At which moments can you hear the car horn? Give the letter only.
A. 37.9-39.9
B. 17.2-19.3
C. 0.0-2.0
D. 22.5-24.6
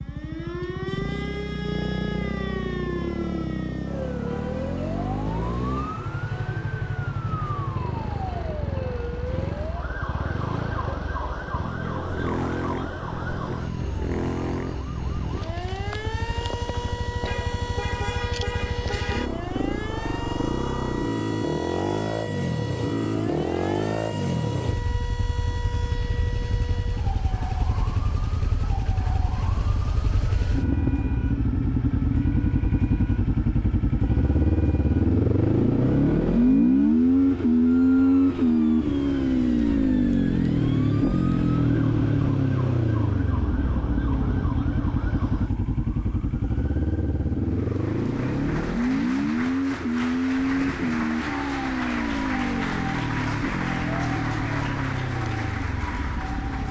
B.